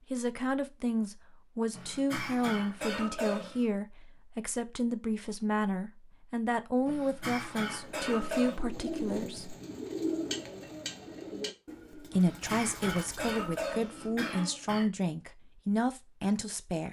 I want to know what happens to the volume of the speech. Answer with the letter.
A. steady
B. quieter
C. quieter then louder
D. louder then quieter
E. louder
A.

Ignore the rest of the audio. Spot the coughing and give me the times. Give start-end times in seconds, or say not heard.
1.7-3.6, 6.8-8.6, 12.1-14.8.